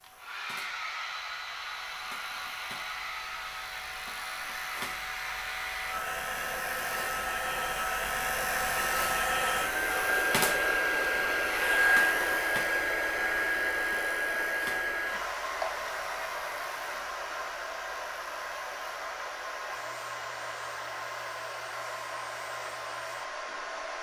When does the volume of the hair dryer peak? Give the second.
12 s.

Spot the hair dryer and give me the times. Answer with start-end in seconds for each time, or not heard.
0.0-23.9.